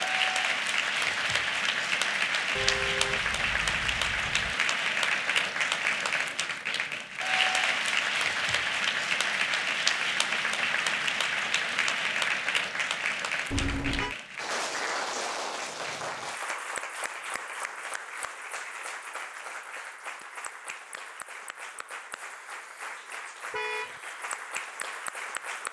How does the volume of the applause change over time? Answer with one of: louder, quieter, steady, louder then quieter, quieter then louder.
quieter.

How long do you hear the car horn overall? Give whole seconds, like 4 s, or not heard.
3 s.